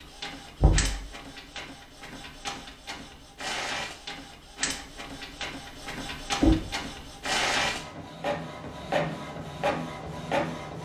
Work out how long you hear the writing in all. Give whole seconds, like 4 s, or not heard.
not heard.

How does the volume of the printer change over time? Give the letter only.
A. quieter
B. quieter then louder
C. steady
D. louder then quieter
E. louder
E.